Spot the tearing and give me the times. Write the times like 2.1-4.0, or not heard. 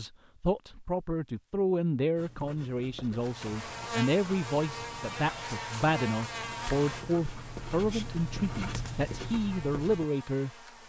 not heard.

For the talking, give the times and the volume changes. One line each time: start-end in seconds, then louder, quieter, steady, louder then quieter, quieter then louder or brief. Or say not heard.
0.0-10.5 steady.